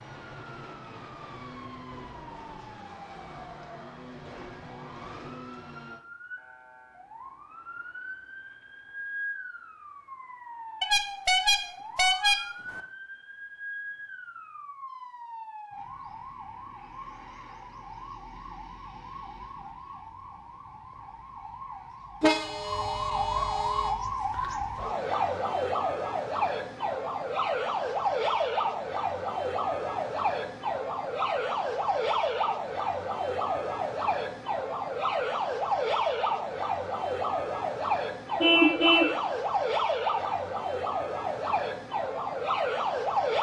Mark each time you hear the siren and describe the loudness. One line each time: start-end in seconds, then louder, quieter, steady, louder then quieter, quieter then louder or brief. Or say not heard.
0.0-43.3 louder.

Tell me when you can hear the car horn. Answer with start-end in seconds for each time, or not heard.
10.8-12.8, 22.2-23.9, 38.4-39.1.